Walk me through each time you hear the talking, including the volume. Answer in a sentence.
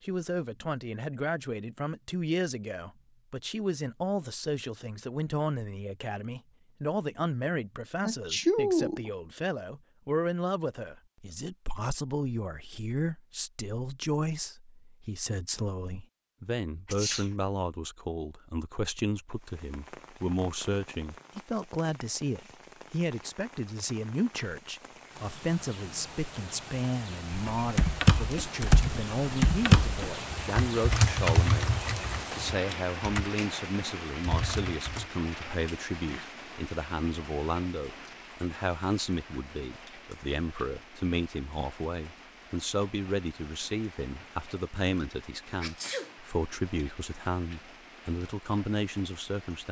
The talking can be heard from 0.0 to 49.6 s, at a steady volume.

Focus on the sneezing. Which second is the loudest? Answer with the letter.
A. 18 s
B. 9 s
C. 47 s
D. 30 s
B.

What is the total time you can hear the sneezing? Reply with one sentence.
The sneezing can be heard for 2 seconds in total.